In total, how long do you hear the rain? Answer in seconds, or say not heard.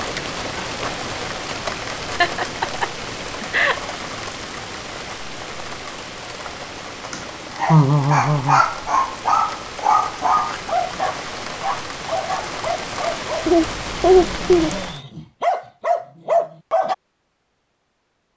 15 s.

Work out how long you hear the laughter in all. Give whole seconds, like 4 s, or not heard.
4 s.